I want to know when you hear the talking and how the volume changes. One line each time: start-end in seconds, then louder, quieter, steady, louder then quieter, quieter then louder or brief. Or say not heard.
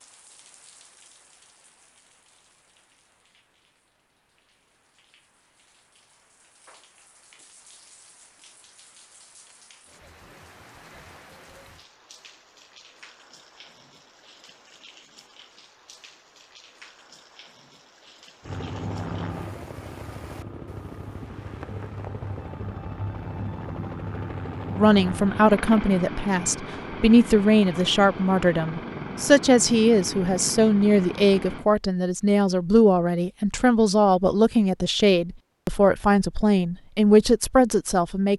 24.8-38.3 steady.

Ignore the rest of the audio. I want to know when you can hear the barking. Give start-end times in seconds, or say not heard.
not heard.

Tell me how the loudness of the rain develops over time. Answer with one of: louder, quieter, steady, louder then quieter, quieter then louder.
louder.